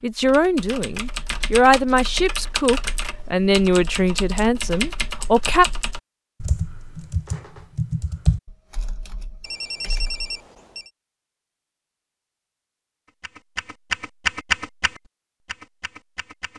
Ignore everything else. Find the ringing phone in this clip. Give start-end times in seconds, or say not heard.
9.4-10.9.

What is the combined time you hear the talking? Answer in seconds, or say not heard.
6 s.